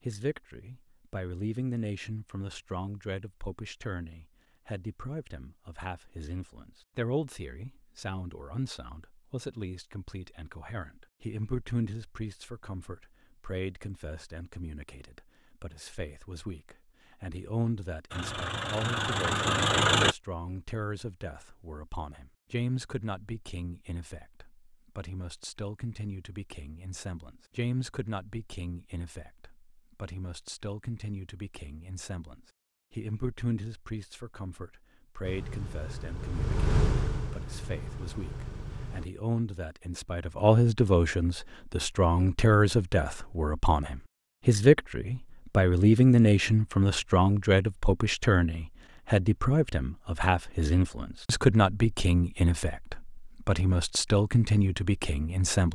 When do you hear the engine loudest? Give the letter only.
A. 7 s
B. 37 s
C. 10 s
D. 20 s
D.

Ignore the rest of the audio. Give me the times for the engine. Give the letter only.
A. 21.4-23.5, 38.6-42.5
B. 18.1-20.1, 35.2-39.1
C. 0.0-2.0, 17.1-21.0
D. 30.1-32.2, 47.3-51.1
B.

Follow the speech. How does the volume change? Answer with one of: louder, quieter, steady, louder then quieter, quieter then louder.
louder.